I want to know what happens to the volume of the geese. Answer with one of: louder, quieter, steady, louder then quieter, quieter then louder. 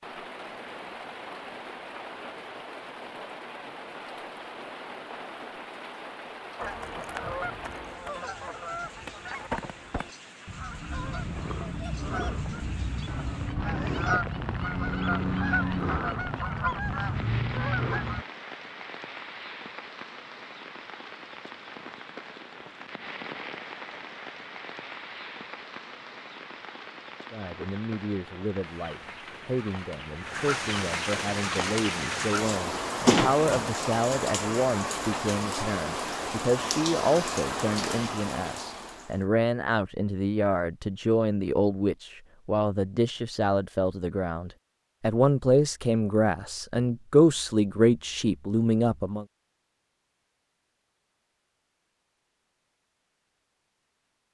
louder.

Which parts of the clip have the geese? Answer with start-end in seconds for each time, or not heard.
6.5-18.2.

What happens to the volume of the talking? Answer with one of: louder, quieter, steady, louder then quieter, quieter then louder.
louder.